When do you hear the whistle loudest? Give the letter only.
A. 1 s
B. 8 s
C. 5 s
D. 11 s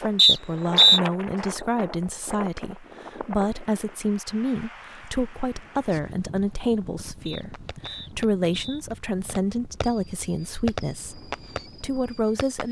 A.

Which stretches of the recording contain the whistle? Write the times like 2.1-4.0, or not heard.
0.1-1.0, 7.2-8.8.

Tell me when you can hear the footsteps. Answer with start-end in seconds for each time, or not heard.
not heard.